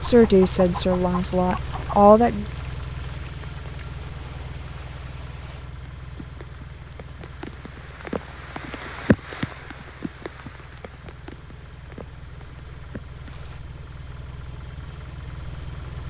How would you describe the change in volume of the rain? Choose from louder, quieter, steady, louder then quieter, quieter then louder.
louder then quieter.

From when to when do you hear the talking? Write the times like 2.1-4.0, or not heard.
0.0-2.5.